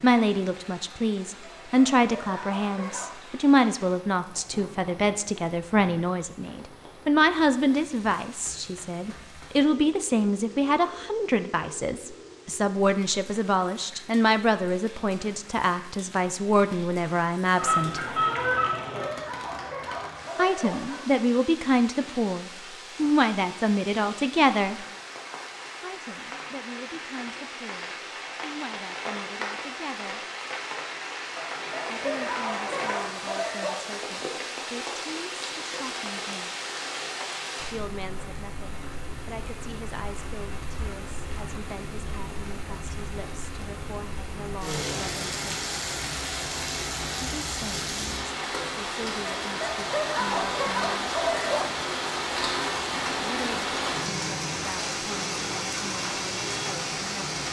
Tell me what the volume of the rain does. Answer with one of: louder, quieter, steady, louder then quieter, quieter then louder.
louder.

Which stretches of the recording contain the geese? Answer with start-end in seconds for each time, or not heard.
17.6-19.1.